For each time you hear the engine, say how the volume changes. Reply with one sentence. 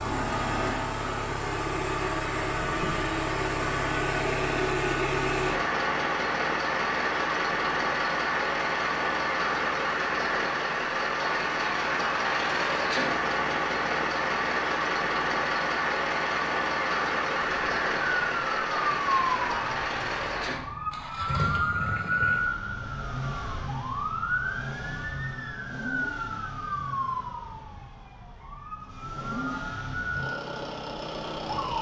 You can hear the engine from 0.0 to 31.7 s, getting quieter.